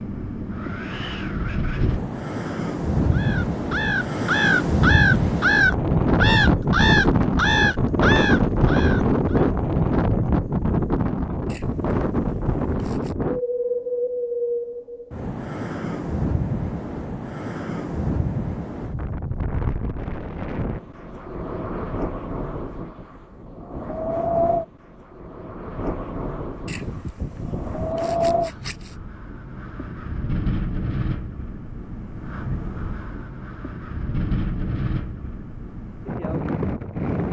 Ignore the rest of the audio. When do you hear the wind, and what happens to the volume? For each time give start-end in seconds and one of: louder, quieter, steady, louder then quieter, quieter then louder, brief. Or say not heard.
0.0-37.2 quieter.